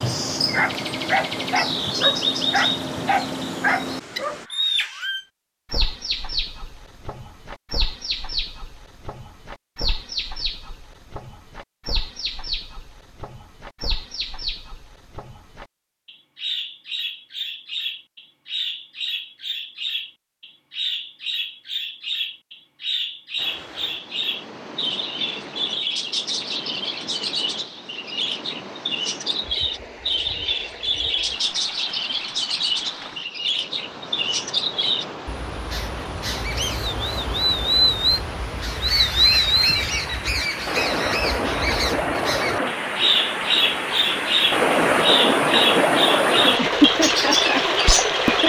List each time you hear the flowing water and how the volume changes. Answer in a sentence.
You can hear the flowing water from 23.4 to 48.4 s, getting louder.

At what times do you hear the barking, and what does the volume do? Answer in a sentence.
You can hear the barking from 0.0 to 4.5 s, at a steady volume.